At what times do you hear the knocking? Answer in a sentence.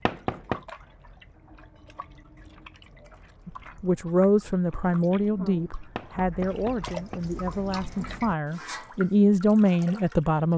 The knocking can be heard from 0.1 to 0.6 s and from 6.0 to 7.4 s.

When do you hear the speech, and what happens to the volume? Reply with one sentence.
The speech can be heard from 3.5 to 10.5 s, getting quieter then louder.